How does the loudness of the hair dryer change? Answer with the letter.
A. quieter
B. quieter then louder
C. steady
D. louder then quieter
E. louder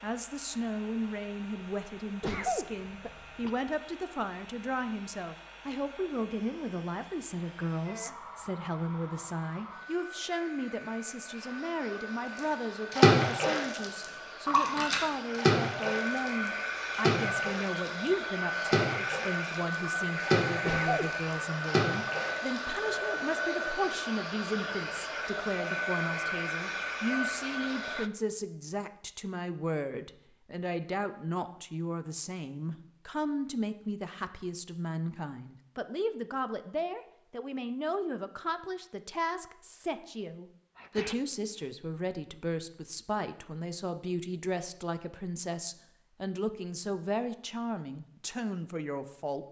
E.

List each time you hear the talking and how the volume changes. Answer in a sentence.
The talking can be heard from 0.0 to 49.4 s, at a steady volume.